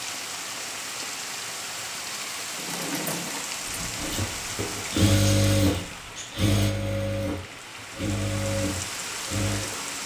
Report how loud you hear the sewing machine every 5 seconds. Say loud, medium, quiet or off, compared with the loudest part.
medium, loud.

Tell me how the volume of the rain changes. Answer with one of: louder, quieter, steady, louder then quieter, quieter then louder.
quieter then louder.